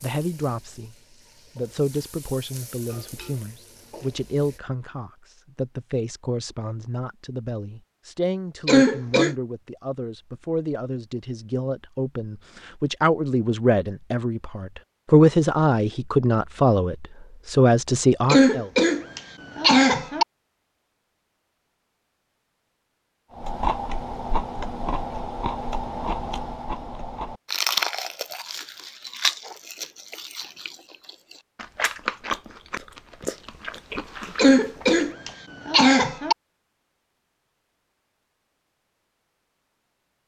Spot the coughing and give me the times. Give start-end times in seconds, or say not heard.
8.7-9.3, 18.2-20.2, 34.4-36.4.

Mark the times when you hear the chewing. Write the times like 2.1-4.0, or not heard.
23.4-35.4.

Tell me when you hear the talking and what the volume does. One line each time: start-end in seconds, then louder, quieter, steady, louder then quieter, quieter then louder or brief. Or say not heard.
0.0-0.9 brief
1.6-18.7 louder.